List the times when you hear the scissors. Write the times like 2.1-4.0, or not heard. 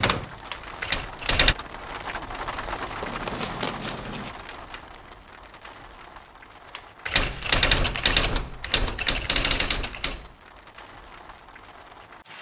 3.0-4.3.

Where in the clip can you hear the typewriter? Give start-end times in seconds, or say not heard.
0.0-1.6, 6.8-10.3.